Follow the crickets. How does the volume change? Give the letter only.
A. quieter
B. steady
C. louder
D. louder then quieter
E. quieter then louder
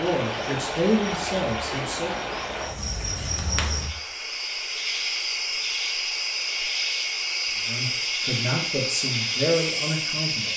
C.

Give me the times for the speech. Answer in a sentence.
You can hear the speech from 0.0 to 2.1 s and from 7.7 to 10.5 s.